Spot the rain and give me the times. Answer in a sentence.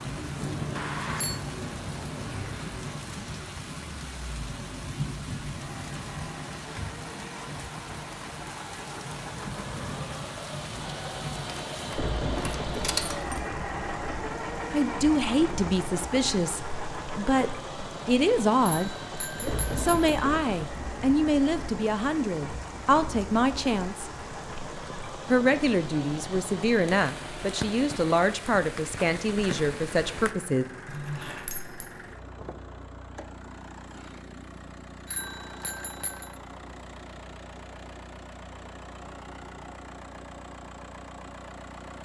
You can hear the rain from 0.0 to 30.4 s.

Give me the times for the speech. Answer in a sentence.
The speech can be heard from 14.7 to 18.9 s, from 19.8 to 24.1 s and from 25.3 to 30.6 s.